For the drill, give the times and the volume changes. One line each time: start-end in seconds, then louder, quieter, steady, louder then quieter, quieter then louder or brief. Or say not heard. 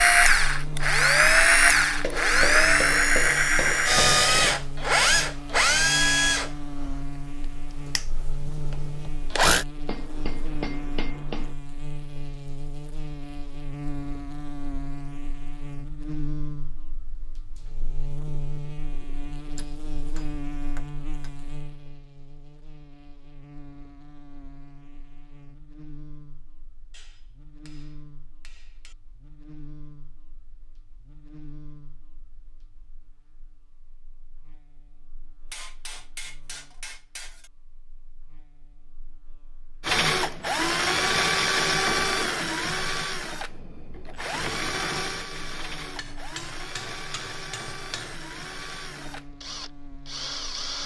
0.0-9.7 quieter
39.9-50.8 quieter.